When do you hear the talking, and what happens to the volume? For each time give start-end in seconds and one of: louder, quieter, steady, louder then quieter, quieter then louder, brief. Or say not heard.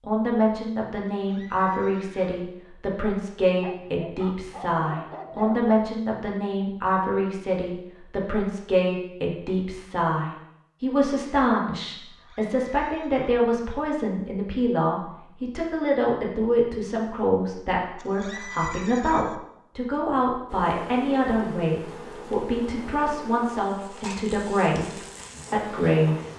0.1-26.3 steady.